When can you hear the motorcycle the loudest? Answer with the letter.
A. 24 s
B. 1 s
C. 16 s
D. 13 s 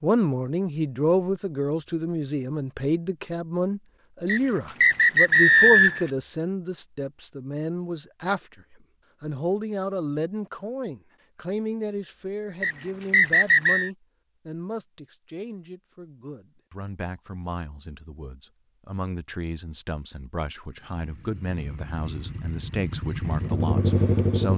A.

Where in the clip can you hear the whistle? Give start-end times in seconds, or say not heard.
4.2-6.1, 12.6-13.9.